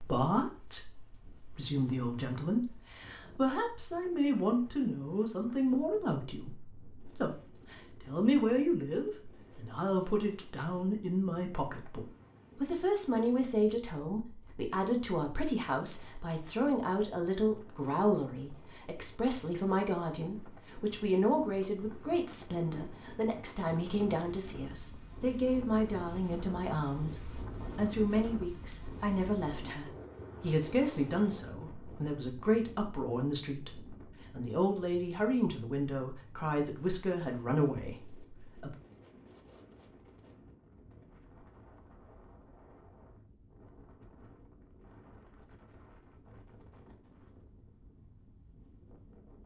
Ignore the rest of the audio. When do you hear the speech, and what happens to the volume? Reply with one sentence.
You can hear the speech from 0.0 to 38.8 s, at a steady volume.